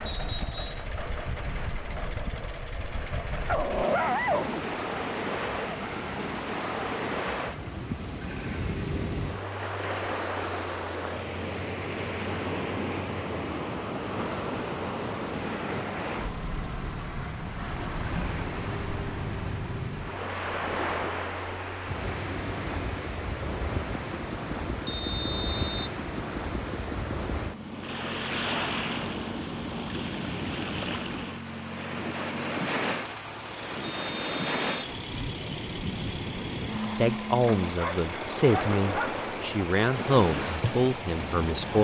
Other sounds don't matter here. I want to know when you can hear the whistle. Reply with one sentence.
You can hear the whistle from 0.1 to 0.9 s, from 24.9 to 25.9 s and from 33.8 to 34.7 s.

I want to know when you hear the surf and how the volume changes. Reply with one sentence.
The surf can be heard from 0.0 to 41.7 s, at a steady volume.